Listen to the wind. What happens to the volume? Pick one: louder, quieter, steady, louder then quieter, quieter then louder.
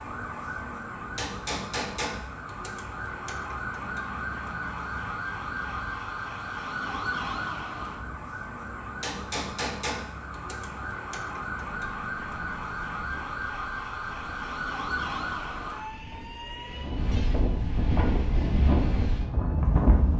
louder.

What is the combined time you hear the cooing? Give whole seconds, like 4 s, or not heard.
not heard.